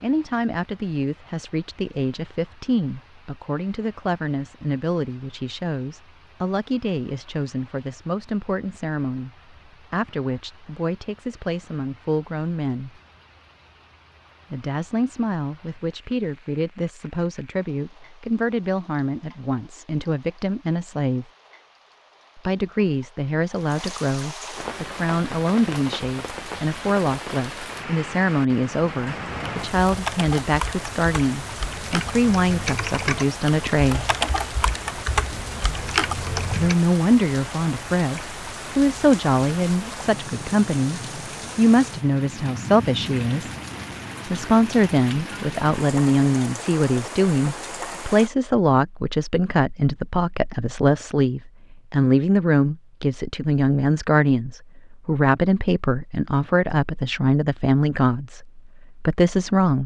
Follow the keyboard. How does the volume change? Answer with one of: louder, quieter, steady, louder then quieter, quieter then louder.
louder.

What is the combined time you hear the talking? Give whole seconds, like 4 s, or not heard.
54 s.